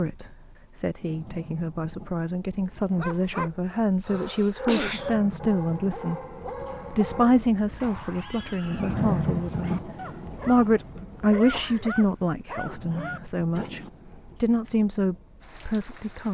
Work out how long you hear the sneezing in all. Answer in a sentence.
You can hear the sneezing for 2 seconds altogether.